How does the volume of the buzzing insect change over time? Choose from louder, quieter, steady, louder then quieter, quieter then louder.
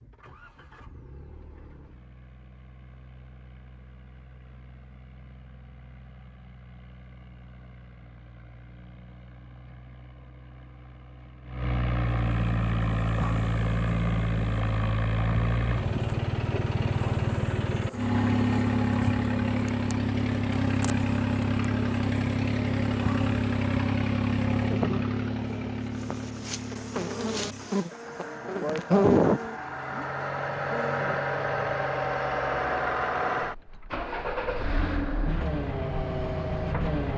louder.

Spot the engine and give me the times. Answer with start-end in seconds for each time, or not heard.
0.0-37.1.